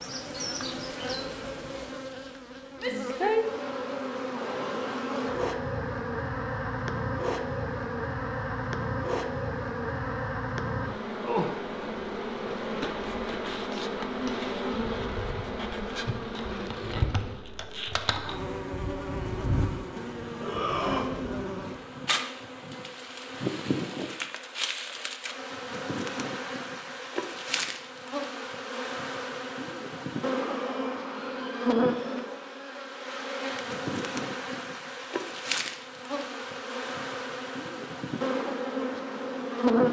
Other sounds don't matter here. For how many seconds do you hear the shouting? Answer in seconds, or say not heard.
3 s.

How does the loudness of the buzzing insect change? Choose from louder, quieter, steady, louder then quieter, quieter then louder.
steady.